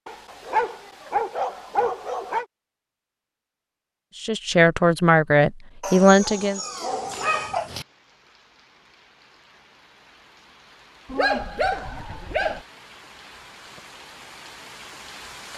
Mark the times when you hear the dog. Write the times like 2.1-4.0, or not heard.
0.1-2.5, 5.8-7.8, 11.1-12.7.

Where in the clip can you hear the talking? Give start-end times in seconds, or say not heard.
4.2-6.6.